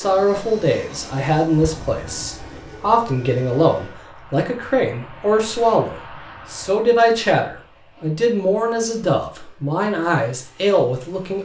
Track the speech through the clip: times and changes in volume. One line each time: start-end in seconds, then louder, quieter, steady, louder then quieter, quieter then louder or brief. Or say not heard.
0.0-11.3 steady.